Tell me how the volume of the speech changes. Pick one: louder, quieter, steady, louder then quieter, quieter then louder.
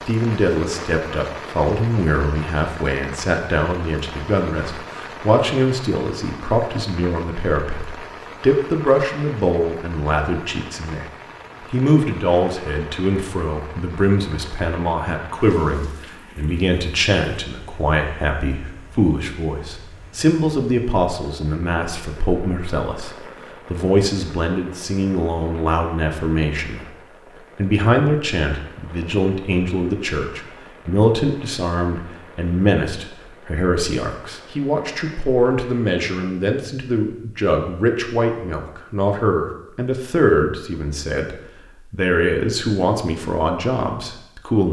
steady.